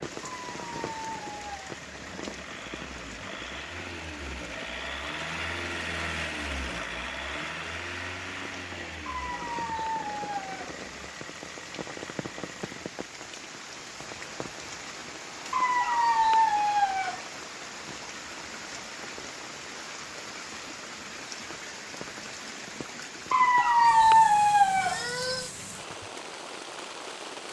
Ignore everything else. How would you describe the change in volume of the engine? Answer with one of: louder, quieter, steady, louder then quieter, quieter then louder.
louder then quieter.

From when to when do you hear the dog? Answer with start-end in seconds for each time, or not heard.
0.2-1.7, 9.1-10.8, 15.5-17.2, 23.3-25.4.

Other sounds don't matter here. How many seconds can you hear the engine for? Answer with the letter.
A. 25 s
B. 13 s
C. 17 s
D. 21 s
B.